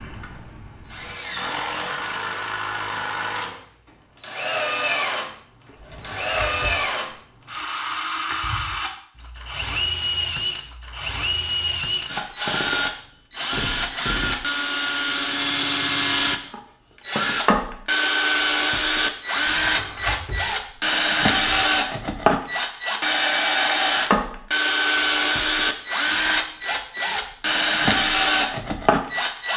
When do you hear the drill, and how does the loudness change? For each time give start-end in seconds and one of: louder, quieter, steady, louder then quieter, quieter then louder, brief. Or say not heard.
0.0-29.5 louder.